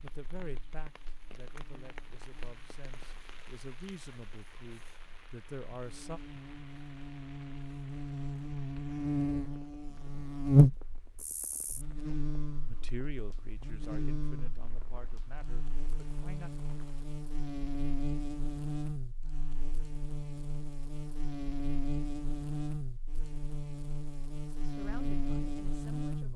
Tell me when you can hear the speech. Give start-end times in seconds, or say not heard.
0.0-6.2, 12.7-16.5, 24.6-26.3.